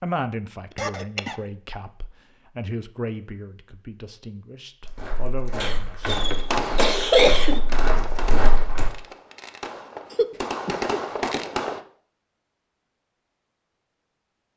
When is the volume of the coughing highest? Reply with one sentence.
The loudest moment of the coughing is at 7 seconds.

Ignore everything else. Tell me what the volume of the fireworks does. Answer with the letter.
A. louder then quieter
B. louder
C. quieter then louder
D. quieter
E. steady
C.